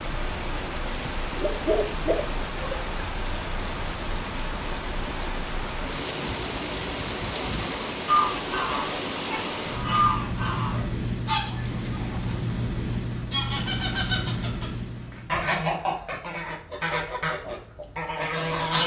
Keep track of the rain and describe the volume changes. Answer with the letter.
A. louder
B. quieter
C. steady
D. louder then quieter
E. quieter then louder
C.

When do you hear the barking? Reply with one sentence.
You can hear the barking from 1.1 to 2.9 s.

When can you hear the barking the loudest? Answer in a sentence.
The loudest moment of the barking is at 2 seconds.